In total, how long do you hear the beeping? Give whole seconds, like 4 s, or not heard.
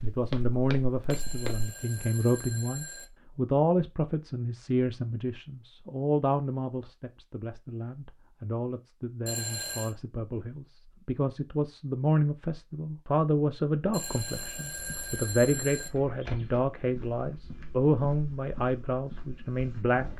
5 s.